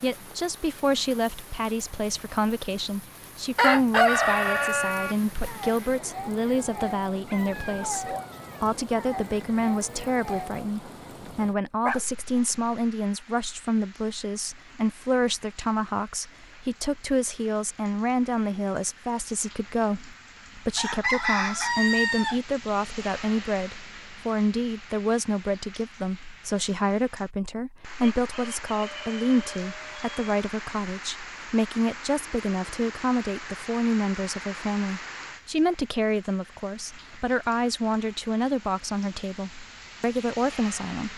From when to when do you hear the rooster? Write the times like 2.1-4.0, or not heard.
3.5-5.2, 20.8-22.4, 28.0-30.2.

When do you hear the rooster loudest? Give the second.
4 s.